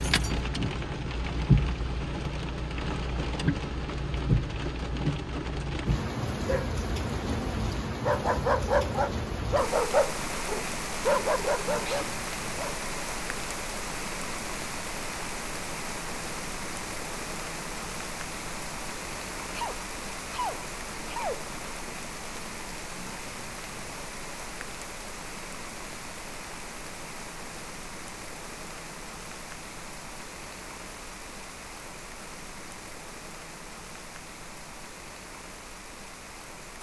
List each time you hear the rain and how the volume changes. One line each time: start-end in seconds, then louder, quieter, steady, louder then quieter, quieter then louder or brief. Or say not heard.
0.0-36.7 quieter.